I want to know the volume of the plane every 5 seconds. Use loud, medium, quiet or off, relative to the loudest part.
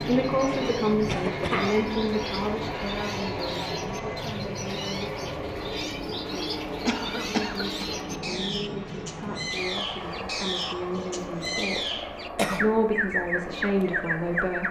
loud, loud, medium.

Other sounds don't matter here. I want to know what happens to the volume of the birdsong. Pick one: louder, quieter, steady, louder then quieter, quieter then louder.
louder.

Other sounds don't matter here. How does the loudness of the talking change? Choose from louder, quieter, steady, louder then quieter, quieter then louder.
quieter then louder.